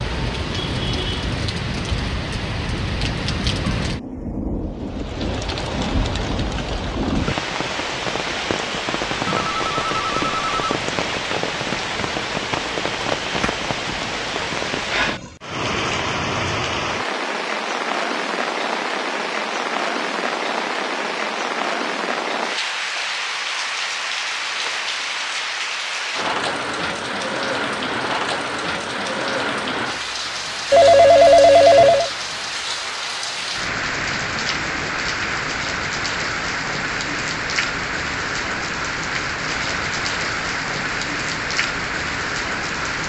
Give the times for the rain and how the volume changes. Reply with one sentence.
You can hear the rain from 0.0 to 43.0 s, at a steady volume.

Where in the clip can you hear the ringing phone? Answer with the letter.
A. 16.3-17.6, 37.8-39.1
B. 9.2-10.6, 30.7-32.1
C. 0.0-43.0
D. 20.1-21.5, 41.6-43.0
B.